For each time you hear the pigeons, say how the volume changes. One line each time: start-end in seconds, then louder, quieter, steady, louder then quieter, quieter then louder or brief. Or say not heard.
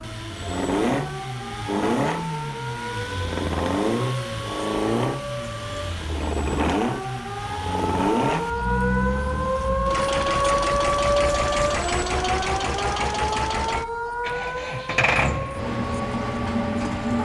not heard.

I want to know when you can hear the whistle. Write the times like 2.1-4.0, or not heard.
not heard.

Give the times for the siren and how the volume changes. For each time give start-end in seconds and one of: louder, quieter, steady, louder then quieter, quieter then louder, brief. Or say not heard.
0.0-17.2 louder then quieter.